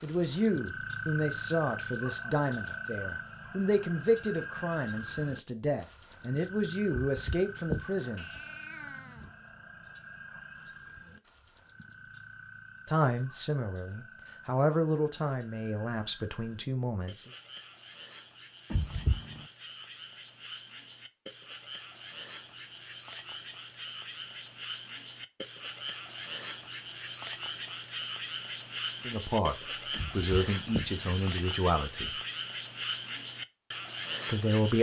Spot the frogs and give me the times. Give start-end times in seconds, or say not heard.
0.0-34.7.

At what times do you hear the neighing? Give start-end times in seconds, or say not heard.
not heard.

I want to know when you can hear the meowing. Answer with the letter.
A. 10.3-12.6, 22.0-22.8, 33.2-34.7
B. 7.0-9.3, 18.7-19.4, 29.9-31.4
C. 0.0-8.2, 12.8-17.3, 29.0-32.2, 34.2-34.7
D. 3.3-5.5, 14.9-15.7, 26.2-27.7
B.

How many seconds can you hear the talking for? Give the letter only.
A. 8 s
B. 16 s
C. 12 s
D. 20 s
B.